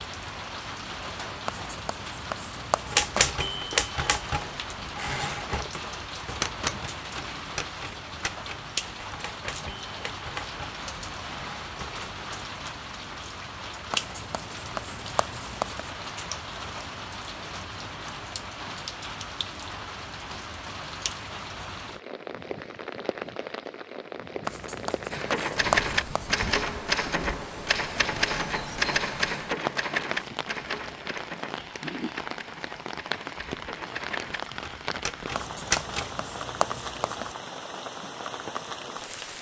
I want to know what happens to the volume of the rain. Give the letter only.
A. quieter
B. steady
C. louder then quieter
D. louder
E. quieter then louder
B.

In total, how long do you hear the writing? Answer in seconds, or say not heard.
8 s.